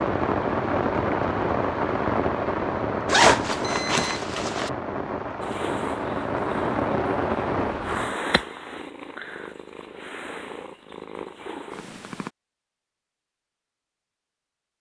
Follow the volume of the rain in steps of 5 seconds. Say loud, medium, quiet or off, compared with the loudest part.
loud, loud, off.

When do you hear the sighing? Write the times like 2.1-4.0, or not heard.
not heard.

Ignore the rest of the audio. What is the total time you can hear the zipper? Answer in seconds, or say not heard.
2 s.